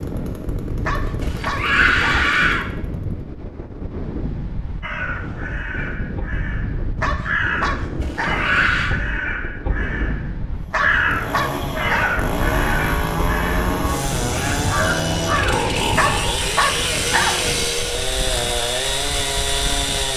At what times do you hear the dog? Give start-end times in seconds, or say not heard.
0.8-2.2, 7.0-8.4, 10.7-12.2, 15.9-17.4.